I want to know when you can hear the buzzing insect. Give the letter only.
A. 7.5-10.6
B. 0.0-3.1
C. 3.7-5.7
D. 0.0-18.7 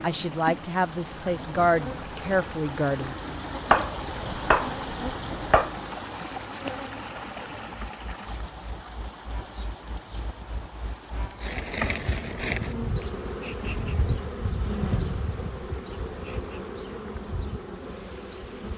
D.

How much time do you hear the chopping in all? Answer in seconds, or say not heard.
2 s.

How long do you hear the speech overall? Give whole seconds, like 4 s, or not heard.
3 s.